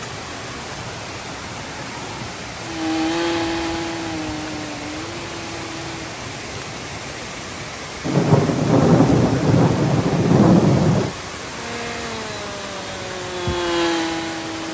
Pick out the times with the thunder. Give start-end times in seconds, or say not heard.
8.0-11.2.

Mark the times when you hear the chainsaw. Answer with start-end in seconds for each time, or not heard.
2.6-6.0, 11.4-14.6.